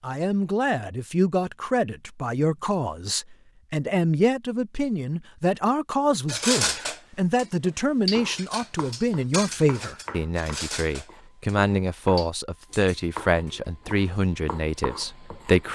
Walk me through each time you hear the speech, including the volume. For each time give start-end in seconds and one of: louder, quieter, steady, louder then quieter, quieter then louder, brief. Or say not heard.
0.0-15.6 steady.